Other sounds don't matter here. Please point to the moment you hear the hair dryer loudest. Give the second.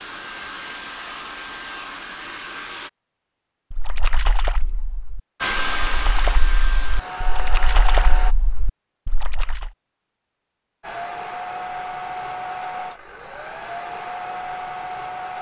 6 s.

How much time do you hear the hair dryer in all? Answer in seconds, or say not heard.
10 s.